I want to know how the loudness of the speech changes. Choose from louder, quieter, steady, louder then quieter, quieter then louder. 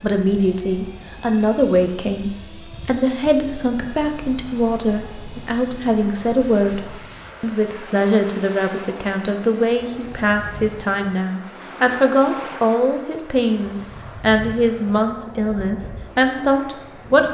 steady.